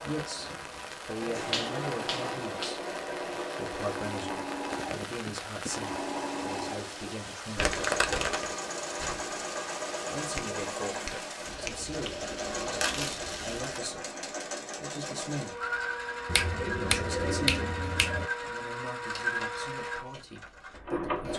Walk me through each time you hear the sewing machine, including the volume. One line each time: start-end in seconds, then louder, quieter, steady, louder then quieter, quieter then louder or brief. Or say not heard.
0.0-21.3 steady.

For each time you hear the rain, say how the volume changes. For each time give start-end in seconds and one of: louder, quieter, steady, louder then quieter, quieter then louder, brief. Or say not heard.
0.0-13.8 steady.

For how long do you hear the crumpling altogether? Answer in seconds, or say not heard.
2 s.